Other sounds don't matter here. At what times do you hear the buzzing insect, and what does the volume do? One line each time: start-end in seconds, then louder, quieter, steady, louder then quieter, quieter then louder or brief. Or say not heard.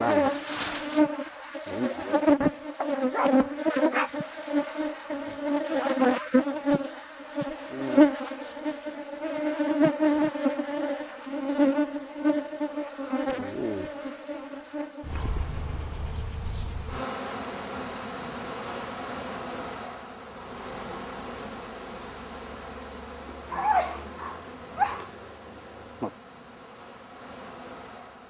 0.0-28.2 quieter.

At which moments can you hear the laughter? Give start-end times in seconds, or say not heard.
not heard.